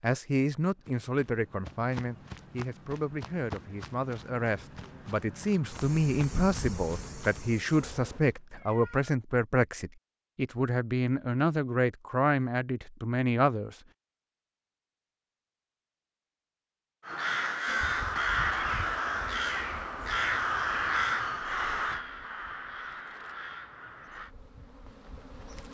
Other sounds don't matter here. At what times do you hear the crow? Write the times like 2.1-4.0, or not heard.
17.0-24.3.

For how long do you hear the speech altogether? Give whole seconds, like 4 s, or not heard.
14 s.